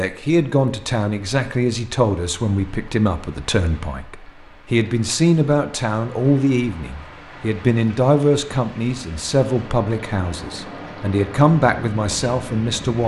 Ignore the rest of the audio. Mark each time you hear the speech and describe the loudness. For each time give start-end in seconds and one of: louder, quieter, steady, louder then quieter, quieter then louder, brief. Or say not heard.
0.0-13.0 steady.